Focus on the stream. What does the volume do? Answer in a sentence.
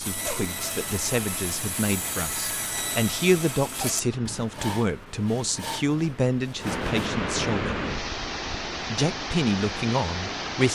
The volume of the stream goes up.